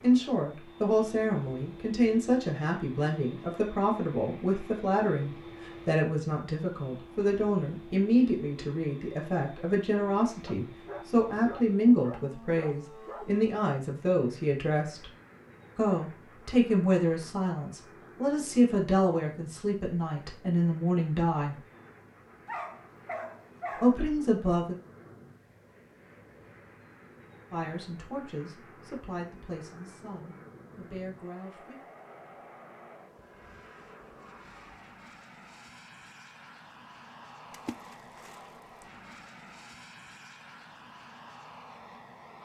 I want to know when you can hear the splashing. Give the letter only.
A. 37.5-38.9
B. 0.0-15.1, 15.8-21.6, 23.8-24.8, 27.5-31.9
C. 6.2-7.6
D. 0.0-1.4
A.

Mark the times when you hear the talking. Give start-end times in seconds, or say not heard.
0.0-15.1, 15.8-21.6, 23.8-24.8, 27.5-31.9.